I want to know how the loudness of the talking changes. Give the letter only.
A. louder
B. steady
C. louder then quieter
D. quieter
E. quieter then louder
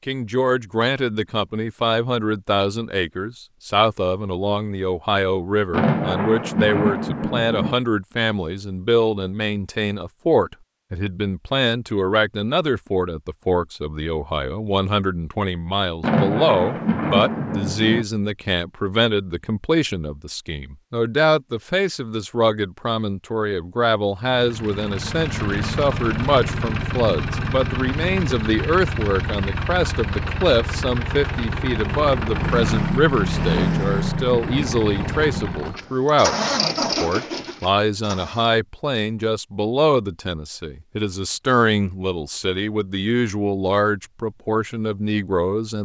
B.